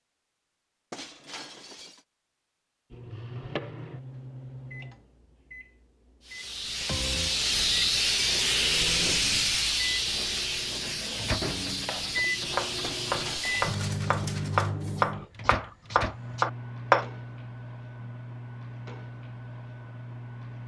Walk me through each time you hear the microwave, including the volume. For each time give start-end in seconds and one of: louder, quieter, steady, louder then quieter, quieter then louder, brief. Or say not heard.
2.9-20.6 louder then quieter.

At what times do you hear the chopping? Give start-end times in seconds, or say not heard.
11.8-17.1.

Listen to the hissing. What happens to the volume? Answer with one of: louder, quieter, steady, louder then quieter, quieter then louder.
quieter.